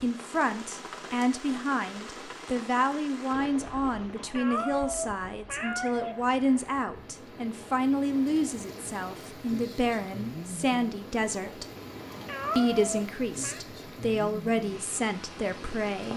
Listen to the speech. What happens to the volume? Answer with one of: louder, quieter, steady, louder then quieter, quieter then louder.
steady.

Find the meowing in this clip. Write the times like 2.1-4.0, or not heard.
4.2-6.2, 12.1-13.7.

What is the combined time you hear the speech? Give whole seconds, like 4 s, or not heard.
15 s.